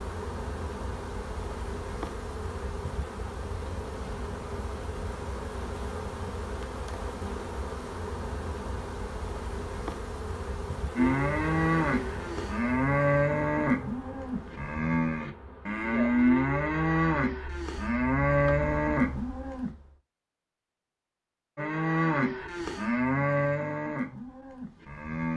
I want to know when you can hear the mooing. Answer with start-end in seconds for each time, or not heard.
10.9-19.7, 21.6-25.3.